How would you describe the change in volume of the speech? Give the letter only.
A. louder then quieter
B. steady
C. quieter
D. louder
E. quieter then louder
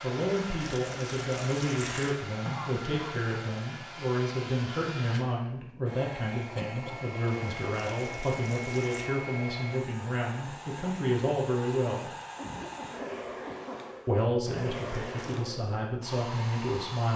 B.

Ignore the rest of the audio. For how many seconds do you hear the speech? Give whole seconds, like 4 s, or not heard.
15 s.